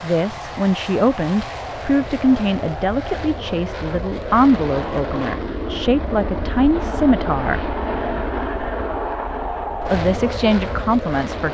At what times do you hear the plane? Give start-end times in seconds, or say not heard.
0.0-11.5.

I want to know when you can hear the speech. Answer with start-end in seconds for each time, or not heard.
0.0-7.8, 9.8-11.5.